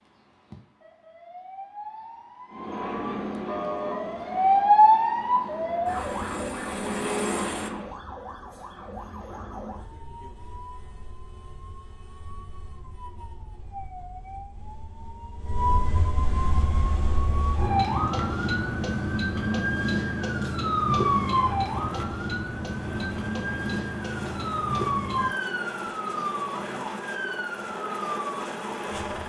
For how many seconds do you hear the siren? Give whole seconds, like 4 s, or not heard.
29 s.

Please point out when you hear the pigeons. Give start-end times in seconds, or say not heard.
not heard.